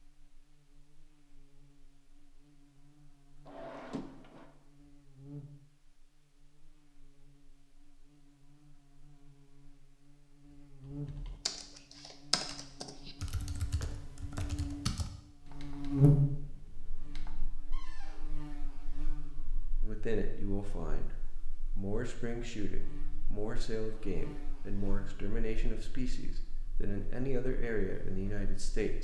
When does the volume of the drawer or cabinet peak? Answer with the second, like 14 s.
4 s.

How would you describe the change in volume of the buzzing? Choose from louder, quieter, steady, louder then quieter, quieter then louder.
louder then quieter.